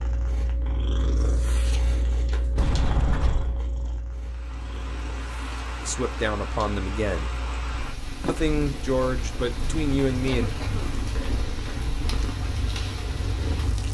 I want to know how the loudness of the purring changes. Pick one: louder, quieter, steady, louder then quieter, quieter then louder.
quieter then louder.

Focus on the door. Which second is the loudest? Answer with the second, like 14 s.
3 s.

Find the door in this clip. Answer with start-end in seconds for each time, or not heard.
2.5-3.6, 8.2-8.8.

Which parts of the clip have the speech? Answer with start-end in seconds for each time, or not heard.
5.8-7.3, 8.2-10.6.